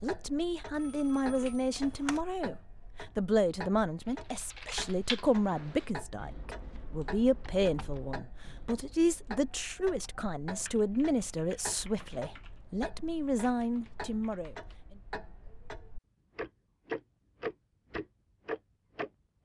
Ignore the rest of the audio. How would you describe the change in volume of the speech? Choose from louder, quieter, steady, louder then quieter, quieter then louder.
steady.